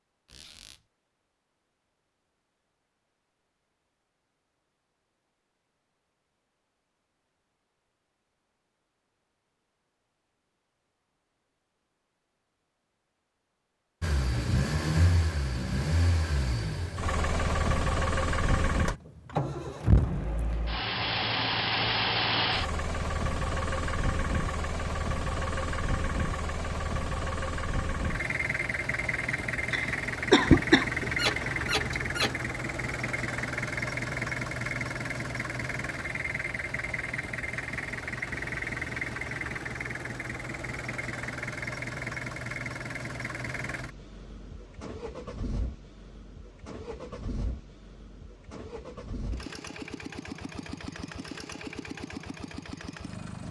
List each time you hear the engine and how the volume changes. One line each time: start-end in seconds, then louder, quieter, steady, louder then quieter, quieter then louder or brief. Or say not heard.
14.0-53.4 quieter.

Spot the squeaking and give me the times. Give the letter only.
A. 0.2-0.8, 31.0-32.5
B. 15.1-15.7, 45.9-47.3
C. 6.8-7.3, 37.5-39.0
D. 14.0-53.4
A.